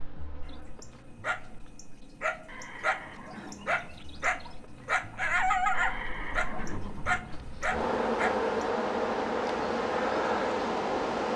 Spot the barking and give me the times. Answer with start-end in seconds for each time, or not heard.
0.5-8.5.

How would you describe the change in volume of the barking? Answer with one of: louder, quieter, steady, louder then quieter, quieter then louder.
louder then quieter.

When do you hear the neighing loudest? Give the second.
6 s.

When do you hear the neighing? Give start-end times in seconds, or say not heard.
2.5-4.0, 5.7-7.5.